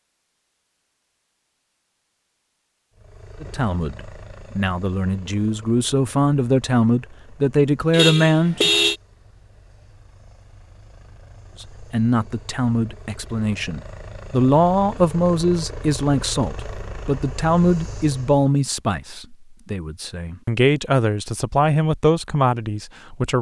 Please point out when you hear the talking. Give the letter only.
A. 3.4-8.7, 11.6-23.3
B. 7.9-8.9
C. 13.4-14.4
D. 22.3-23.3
A.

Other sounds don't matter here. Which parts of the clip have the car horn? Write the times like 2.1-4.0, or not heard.
7.9-8.9.